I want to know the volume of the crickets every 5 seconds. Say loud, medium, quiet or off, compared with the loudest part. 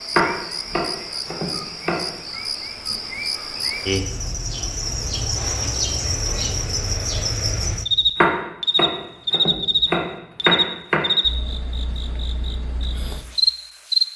medium, loud, loud.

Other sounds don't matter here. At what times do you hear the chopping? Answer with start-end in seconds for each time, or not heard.
0.1-2.0, 8.2-11.0.